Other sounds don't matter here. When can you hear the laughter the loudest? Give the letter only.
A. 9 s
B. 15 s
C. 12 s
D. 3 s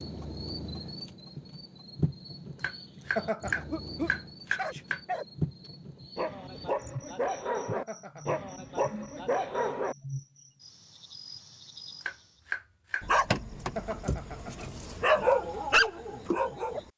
D.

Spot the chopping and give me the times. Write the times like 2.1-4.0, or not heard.
2.6-5.0, 12.0-13.1.